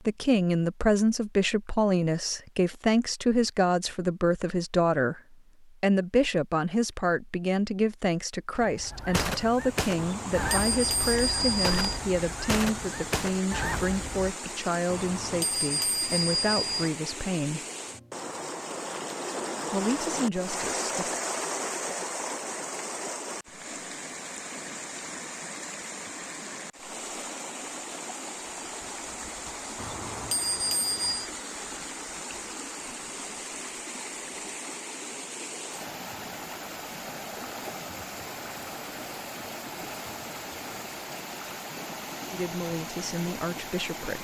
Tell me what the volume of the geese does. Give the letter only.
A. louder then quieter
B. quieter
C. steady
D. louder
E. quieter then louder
C.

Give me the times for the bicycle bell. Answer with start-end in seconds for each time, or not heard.
9.9-12.0, 14.8-16.9, 29.8-31.3.